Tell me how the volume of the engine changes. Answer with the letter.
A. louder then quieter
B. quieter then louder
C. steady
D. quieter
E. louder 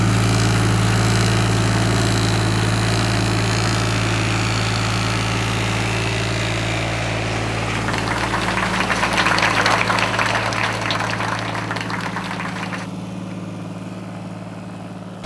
D.